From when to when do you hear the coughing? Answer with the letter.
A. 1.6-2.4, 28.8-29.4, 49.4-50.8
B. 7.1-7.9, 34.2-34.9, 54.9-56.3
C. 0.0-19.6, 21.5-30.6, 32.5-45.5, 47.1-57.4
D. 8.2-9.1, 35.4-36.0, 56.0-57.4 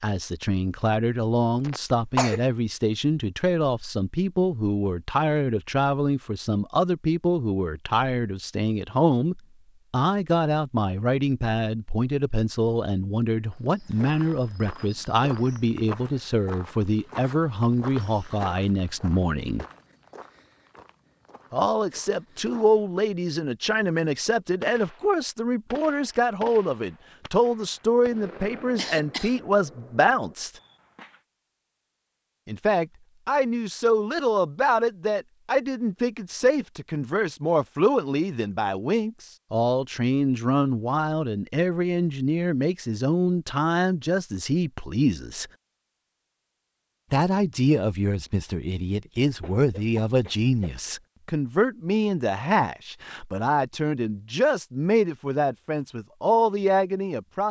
A.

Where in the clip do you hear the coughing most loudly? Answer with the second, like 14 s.
2 s.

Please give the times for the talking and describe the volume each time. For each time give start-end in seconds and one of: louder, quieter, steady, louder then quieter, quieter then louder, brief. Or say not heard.
0.0-19.6 steady
21.5-30.6 steady
32.5-45.5 steady
47.1-57.4 steady.